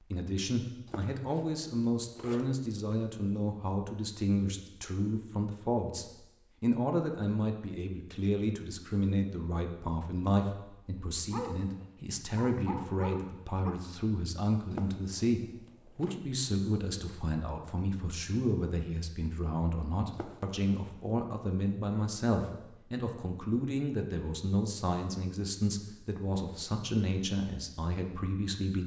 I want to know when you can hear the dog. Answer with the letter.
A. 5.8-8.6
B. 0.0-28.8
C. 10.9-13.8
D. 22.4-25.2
C.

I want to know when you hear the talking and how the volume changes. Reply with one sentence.
The talking can be heard from 0.0 to 28.8 s, at a steady volume.